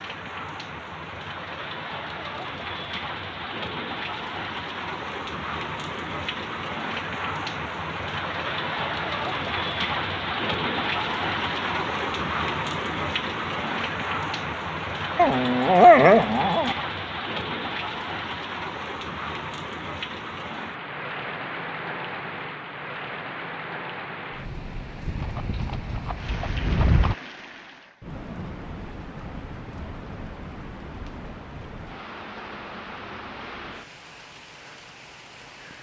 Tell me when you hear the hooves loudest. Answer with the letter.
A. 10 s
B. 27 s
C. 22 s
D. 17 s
B.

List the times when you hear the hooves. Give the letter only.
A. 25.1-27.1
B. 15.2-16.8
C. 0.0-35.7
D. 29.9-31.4
A.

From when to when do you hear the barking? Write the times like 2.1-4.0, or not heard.
15.2-16.8.